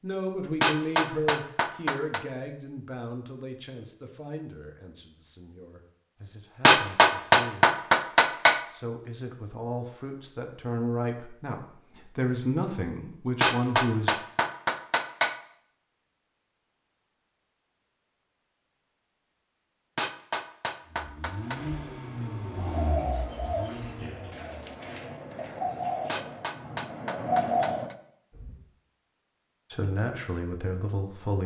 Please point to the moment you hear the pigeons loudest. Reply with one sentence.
The volume of the pigeons peaks at 27 seconds.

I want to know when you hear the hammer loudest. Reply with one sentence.
The loudest moment of the hammer is at 7 seconds.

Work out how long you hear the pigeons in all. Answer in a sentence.
The pigeons can be heard for 6 seconds in total.